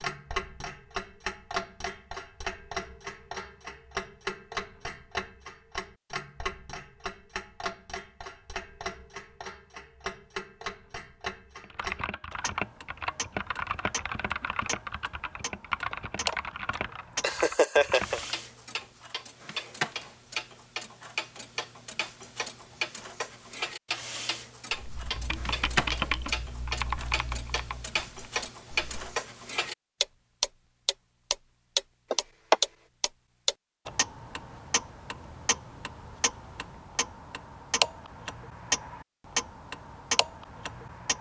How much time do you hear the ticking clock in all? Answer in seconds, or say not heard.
41 s.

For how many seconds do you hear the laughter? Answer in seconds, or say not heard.
3 s.